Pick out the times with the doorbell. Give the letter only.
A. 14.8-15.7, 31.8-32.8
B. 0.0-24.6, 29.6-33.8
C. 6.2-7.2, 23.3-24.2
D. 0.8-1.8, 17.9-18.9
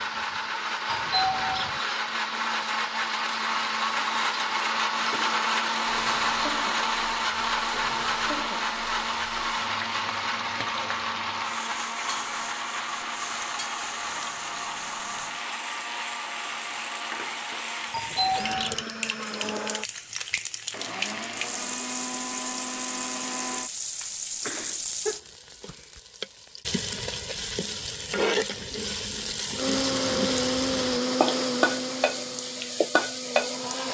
D.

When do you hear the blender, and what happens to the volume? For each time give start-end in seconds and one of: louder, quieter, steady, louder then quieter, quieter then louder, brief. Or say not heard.
0.0-24.6 quieter
29.6-33.8 quieter.